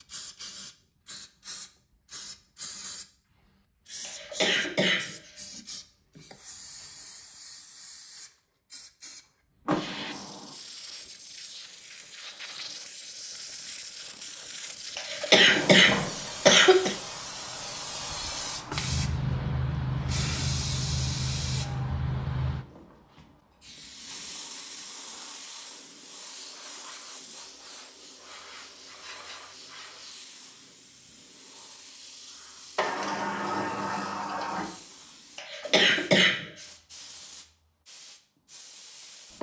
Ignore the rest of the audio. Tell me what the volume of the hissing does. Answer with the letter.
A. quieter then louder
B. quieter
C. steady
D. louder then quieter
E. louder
D.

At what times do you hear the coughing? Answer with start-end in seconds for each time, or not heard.
4.0-5.3, 14.9-16.9, 35.4-36.6.